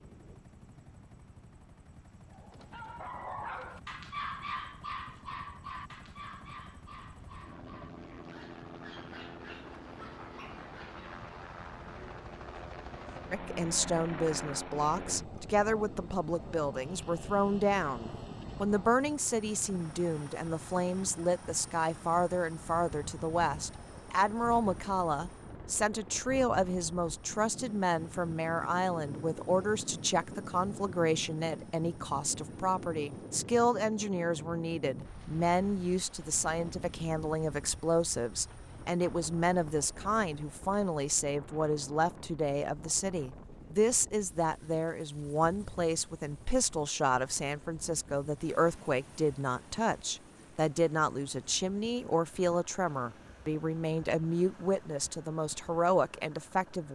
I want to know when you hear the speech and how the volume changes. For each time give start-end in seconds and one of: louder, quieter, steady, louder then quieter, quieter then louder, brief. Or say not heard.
13.3-56.9 steady.